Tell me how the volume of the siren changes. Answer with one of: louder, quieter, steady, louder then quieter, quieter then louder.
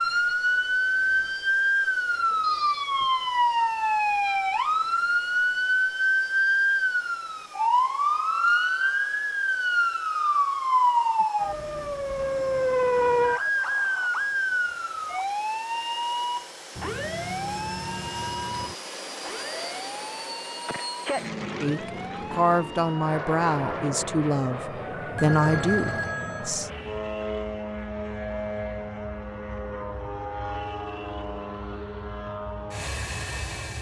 quieter.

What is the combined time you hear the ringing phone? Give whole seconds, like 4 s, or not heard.
4 s.